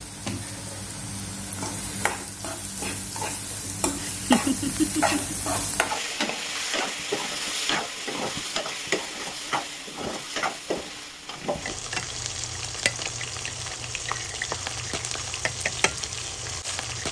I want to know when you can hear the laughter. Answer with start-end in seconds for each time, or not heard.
4.0-5.5.